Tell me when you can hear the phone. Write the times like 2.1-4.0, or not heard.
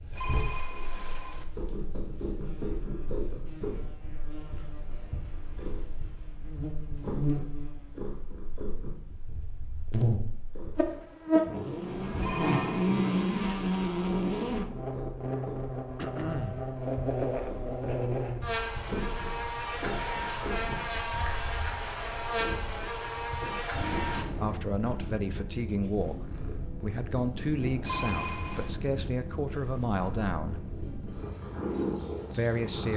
0.1-1.4, 12.2-13.2, 27.8-28.7.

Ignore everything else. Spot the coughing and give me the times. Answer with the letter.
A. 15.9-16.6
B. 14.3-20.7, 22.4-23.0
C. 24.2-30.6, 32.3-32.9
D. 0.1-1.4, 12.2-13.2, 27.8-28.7
A.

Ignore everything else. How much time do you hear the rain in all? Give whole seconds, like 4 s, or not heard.
not heard.